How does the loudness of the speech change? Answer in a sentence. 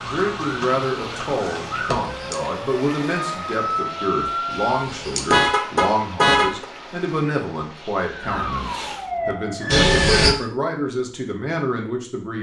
The volume of the speech stays about the same.